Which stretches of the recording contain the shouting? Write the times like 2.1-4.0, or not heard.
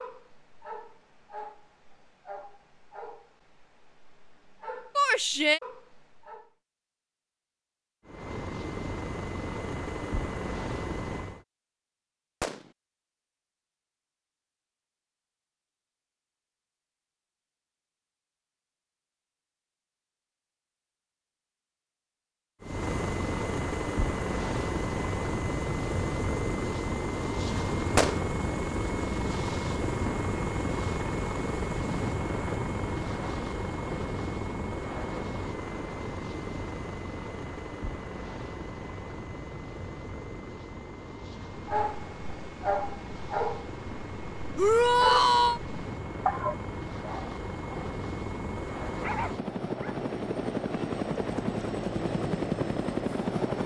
5.0-5.6, 44.5-45.6.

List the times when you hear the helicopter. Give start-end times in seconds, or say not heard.
8.1-11.4, 22.6-53.6.